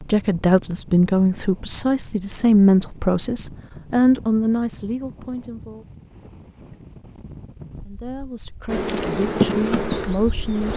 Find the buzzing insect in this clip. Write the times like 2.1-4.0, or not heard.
8.7-10.7.